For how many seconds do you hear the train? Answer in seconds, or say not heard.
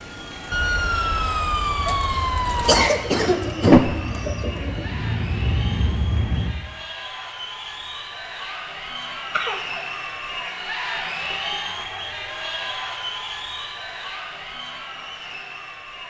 5 s.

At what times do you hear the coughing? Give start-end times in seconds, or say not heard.
2.1-4.0, 9.3-9.8.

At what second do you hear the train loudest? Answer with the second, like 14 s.
6 s.